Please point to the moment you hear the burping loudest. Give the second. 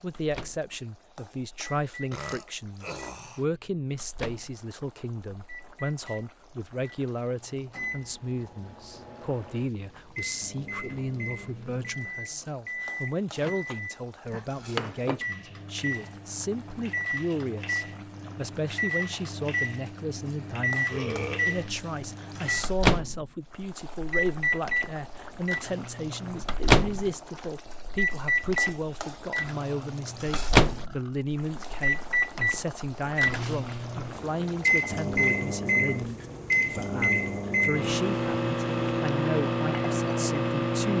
21 s.